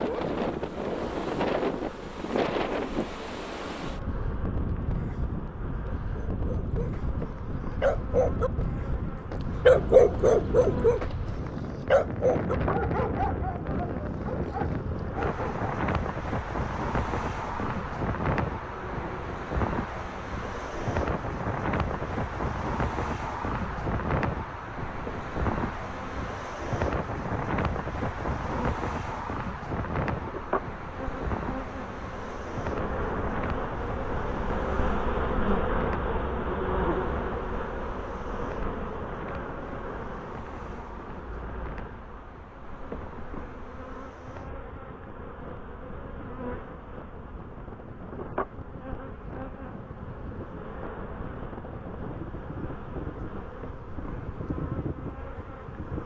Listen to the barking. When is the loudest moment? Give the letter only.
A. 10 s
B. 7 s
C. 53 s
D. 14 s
A.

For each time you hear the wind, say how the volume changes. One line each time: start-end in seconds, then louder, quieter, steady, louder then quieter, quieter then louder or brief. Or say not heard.
0.0-56.0 quieter.